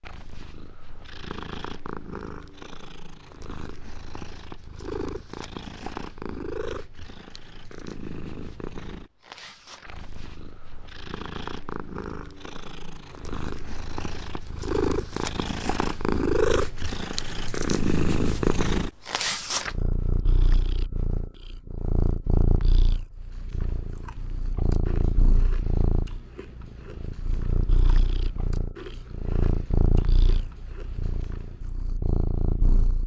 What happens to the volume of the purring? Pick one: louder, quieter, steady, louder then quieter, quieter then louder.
louder then quieter.